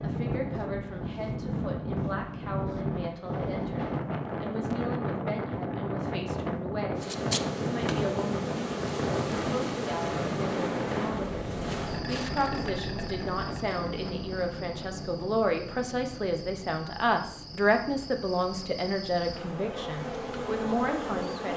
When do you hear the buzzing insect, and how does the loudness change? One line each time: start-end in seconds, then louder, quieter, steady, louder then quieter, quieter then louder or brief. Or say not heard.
7.0-21.5 quieter then louder.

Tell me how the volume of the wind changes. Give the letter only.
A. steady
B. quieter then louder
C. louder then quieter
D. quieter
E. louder
D.